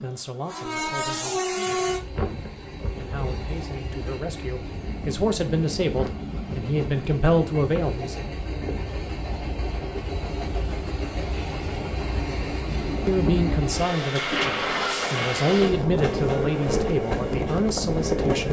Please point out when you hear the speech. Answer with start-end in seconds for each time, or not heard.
0.0-8.2, 13.1-18.4.